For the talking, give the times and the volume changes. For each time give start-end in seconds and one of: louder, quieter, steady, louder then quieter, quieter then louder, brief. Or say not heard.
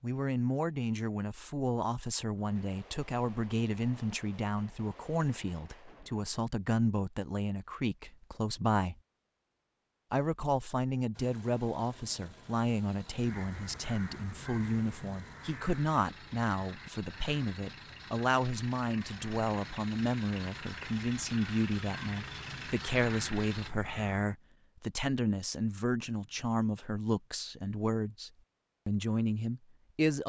0.0-8.9 steady
10.1-30.2 steady.